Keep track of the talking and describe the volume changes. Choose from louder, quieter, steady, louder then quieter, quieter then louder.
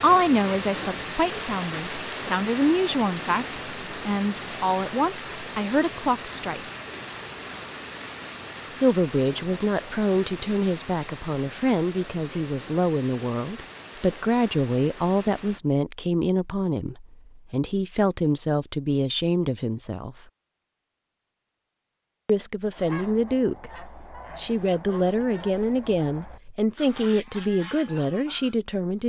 steady.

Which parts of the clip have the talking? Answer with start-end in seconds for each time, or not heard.
0.0-6.6, 8.7-20.1, 22.2-29.0.